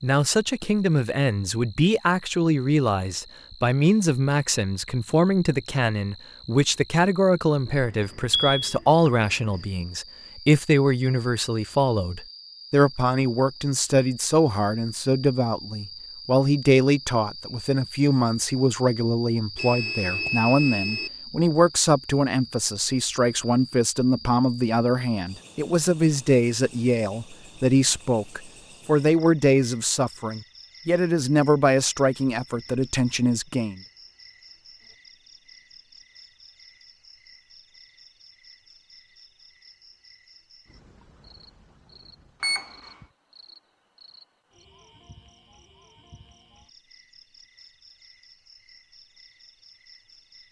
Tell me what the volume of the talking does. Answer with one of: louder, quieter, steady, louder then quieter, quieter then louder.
steady.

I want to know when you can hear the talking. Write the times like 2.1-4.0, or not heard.
0.0-33.8.